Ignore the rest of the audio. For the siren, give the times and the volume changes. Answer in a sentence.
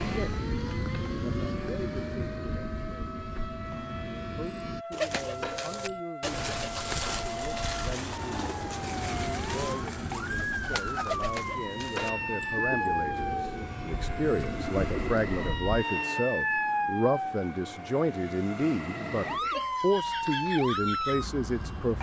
You can hear the siren from 0.0 to 21.9 s, getting louder.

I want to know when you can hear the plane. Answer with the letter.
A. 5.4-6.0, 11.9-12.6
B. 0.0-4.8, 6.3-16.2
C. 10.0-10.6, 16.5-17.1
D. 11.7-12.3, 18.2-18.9
B.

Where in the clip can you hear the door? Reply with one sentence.
You can hear the door from 5.4 to 6.0 s and from 11.9 to 12.6 s.